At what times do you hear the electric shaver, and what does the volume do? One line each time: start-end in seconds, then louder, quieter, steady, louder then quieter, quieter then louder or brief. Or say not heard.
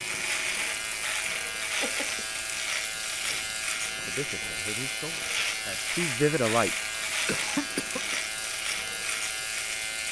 0.0-10.0 steady.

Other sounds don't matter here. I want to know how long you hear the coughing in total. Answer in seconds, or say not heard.
2 s.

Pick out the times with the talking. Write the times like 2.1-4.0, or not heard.
3.2-6.8.